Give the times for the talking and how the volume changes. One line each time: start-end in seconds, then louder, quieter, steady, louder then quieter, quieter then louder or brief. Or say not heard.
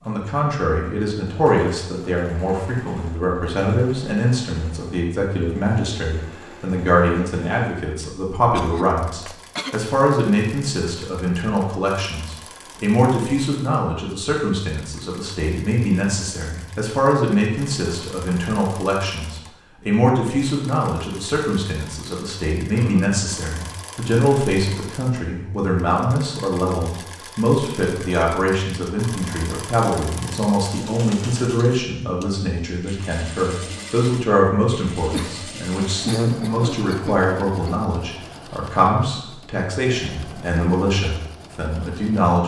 0.1-42.4 steady.